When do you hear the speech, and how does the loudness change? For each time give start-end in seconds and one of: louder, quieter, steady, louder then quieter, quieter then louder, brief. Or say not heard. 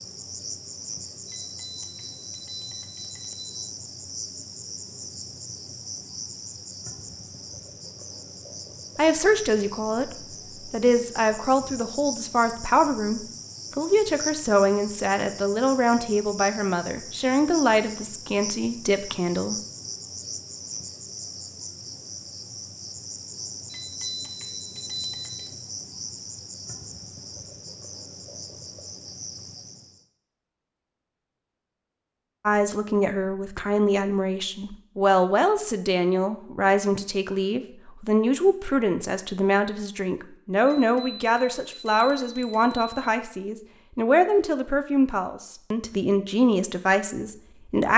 8.9-19.6 steady
32.5-47.9 steady.